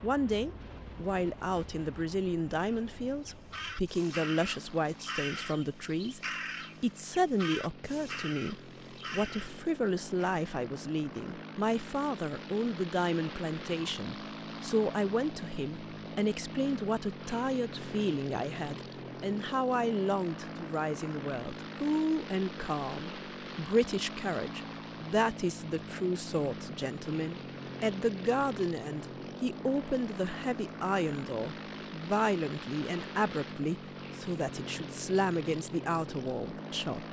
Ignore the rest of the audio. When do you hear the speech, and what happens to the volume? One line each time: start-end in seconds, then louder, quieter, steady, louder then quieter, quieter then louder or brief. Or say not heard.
0.0-6.2 steady
6.8-37.0 steady.